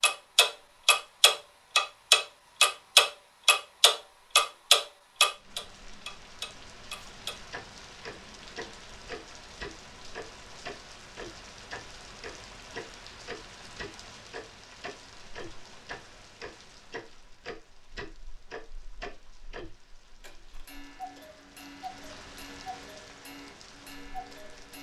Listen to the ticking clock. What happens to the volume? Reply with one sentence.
The loudness of the ticking clock goes down.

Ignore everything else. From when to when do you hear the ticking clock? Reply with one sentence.
The ticking clock can be heard from 0.0 to 24.7 s.